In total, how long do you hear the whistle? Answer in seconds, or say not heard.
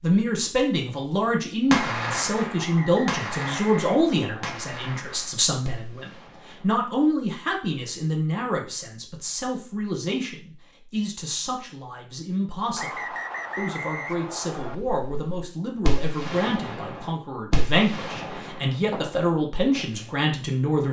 4 s.